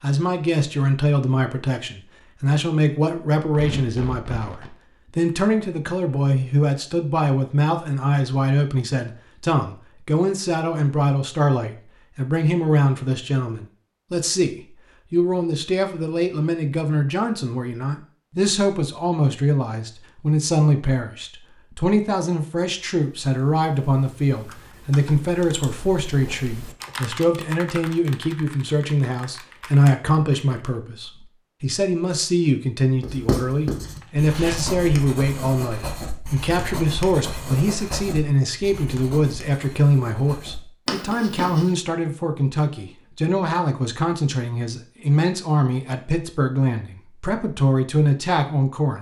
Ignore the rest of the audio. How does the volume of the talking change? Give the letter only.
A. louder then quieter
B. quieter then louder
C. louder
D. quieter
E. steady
E.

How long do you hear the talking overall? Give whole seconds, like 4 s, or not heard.
49 s.